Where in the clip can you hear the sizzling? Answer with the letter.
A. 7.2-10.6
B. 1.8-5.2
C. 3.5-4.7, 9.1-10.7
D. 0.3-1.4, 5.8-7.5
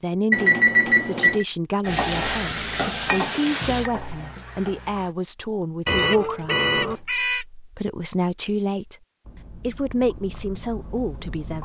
B.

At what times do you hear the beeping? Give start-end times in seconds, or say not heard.
0.3-1.4, 5.8-7.5.